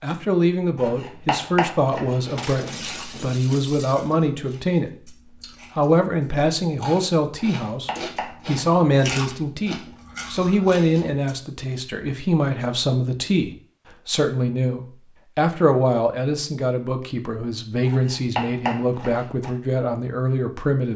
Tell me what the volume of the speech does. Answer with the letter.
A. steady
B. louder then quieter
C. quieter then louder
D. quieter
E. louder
A.